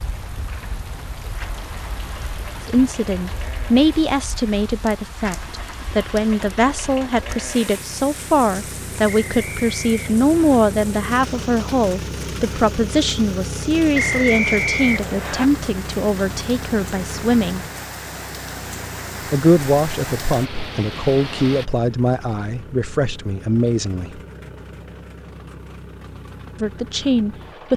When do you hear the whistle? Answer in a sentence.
You can hear the whistle from 9.1 to 10.6 s and from 13.9 to 15.4 s.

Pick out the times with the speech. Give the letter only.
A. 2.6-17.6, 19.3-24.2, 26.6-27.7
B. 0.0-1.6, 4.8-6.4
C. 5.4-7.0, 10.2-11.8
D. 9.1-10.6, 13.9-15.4
A.